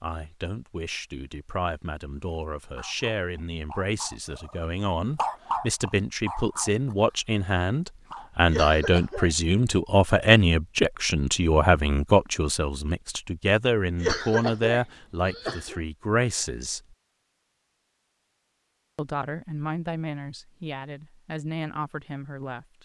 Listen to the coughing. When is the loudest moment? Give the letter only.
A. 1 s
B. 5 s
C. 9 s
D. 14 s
D.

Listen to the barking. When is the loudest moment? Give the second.
5 s.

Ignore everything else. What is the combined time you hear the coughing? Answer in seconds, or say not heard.
3 s.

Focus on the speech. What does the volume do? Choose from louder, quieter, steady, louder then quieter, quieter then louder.
louder then quieter.